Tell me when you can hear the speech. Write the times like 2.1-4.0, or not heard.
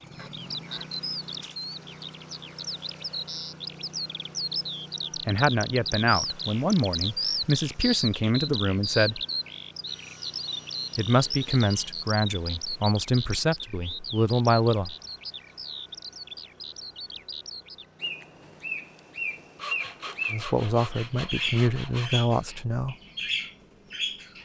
5.2-9.2, 10.9-14.9, 20.3-22.9.